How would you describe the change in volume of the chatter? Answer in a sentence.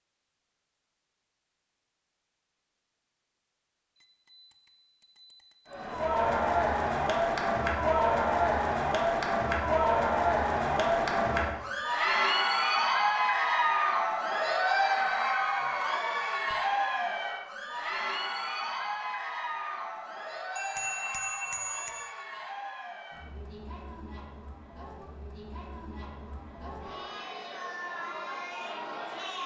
The volume of the chatter goes down.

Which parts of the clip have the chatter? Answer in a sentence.
You can hear the chatter from 5.7 to 29.4 s.